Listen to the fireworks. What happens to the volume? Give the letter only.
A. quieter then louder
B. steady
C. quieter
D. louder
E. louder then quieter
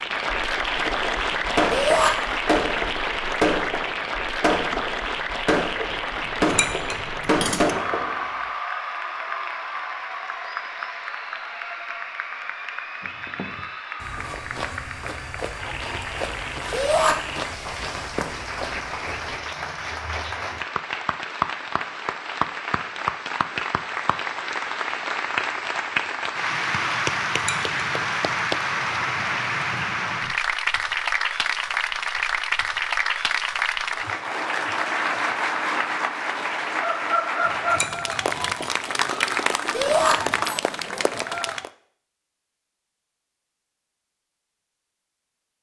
B.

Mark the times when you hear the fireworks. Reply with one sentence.
You can hear the fireworks from 0.8 to 8.3 s.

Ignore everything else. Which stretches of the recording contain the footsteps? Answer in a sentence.
You can hear the footsteps from 13.0 to 19.4 s.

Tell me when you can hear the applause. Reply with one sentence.
You can hear the applause from 0.0 to 41.7 s.